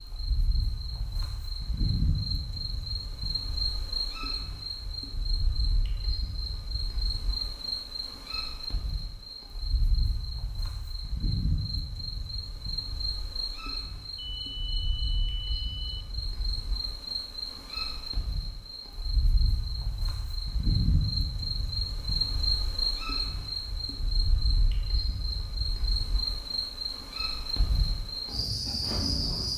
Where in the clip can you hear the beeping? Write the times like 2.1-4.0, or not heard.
14.2-16.1.